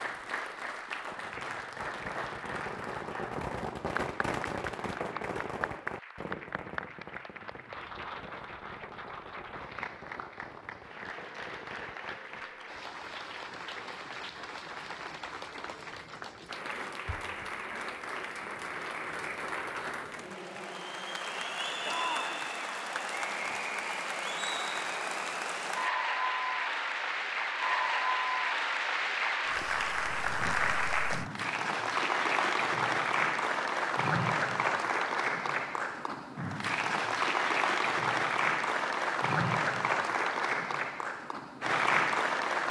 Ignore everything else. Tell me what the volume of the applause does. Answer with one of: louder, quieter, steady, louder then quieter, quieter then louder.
louder.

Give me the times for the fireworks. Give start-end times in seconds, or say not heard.
1.0-12.4.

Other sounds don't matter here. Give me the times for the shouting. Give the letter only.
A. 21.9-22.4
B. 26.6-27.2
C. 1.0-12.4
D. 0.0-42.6
A.